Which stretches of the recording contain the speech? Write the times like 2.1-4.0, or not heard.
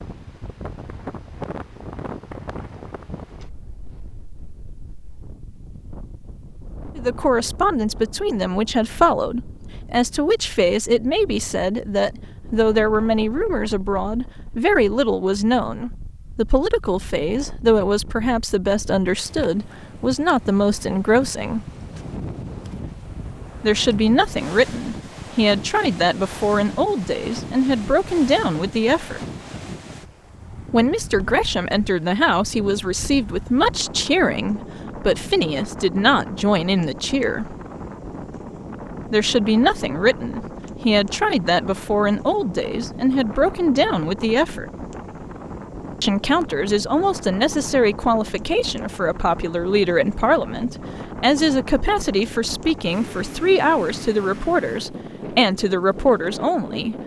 7.0-21.6, 23.6-29.2, 30.7-37.5, 39.1-44.6, 46.0-57.0.